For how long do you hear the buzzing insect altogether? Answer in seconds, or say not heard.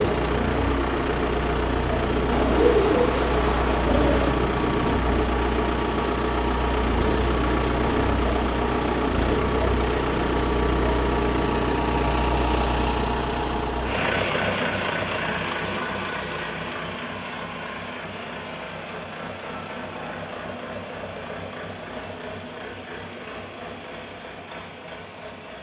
not heard.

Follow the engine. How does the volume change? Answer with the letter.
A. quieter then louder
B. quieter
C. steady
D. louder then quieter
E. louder
B.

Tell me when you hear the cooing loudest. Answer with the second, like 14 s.
3 s.